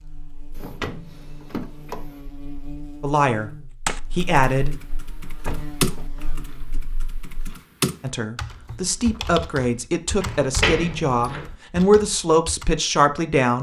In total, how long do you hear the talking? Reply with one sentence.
You can hear the talking for 7 seconds altogether.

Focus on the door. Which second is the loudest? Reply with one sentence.
The loudest moment of the door is at 11 seconds.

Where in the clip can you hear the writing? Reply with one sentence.
You can't hear the writing here.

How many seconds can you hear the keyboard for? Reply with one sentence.
The keyboard can be heard for 9 seconds in total.